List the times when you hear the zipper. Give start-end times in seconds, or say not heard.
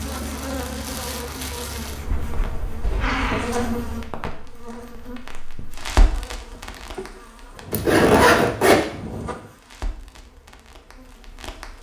2.0-3.0, 7.7-8.8.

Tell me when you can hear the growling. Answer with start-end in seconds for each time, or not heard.
2.8-3.5.